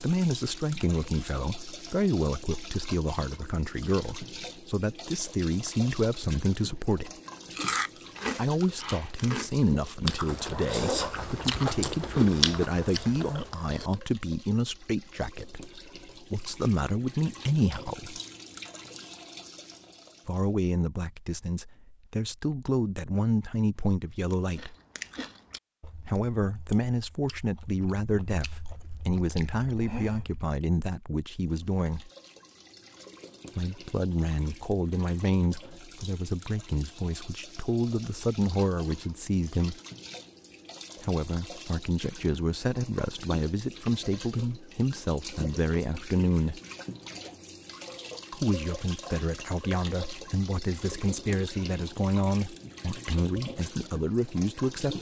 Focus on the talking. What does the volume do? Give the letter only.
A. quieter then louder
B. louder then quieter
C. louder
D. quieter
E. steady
E.